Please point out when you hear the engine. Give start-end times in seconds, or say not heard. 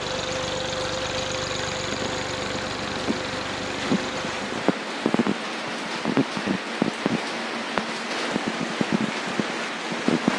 0.0-4.5.